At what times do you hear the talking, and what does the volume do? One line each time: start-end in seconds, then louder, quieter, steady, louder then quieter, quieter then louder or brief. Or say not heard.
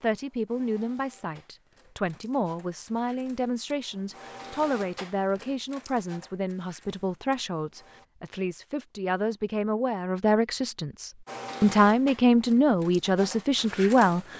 0.0-14.3 louder.